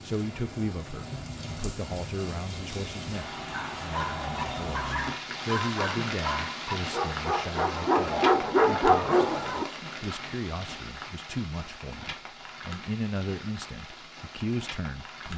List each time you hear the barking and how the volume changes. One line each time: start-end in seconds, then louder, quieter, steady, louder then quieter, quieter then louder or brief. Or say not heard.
3.5-9.7 louder.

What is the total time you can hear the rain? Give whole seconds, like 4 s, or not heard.
15 s.